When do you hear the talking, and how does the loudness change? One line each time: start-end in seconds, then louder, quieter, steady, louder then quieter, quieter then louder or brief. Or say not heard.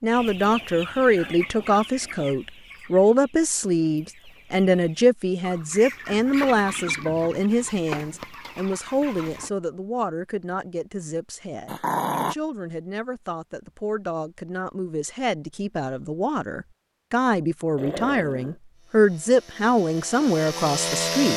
0.0-21.3 quieter then louder.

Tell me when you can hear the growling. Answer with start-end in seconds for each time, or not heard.
0.4-2.4, 11.7-12.3, 17.8-18.6.